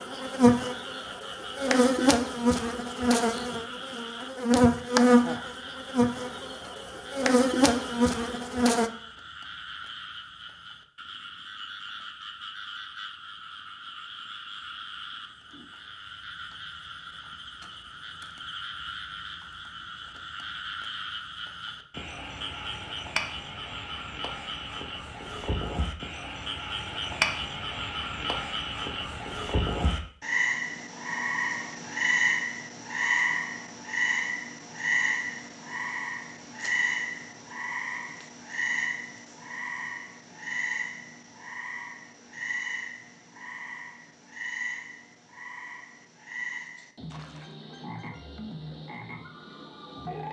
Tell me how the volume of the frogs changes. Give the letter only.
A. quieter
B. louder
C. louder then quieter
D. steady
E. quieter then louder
C.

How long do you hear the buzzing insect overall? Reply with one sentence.
You can hear the buzzing insect for 9 seconds altogether.